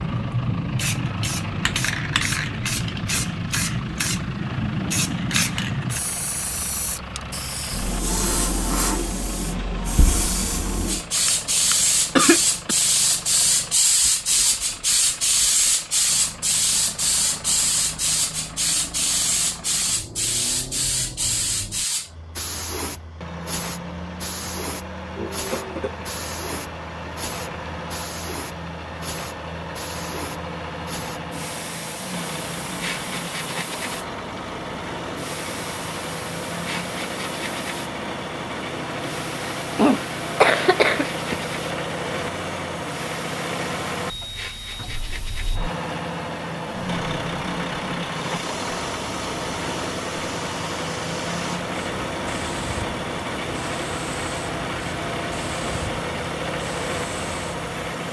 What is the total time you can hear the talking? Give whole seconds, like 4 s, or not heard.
not heard.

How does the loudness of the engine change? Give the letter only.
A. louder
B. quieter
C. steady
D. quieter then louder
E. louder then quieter
A.